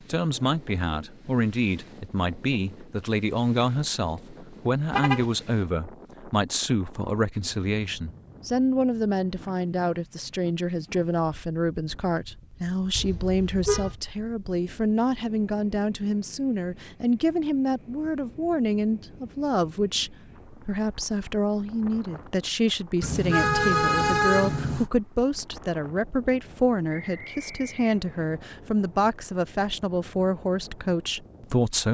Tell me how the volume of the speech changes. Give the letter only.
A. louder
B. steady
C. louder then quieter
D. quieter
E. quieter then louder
B.